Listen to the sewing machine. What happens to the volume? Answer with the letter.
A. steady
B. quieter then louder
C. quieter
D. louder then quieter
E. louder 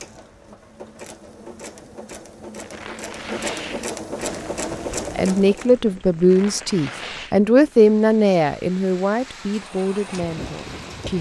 E.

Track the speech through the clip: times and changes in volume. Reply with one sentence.
The speech can be heard from 5.2 to 11.1 s, getting quieter.